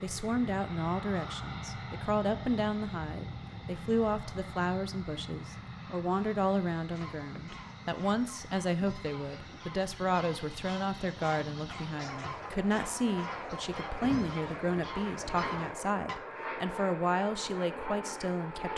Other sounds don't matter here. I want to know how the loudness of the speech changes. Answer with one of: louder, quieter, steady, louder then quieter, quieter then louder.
steady.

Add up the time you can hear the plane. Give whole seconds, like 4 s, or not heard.
19 s.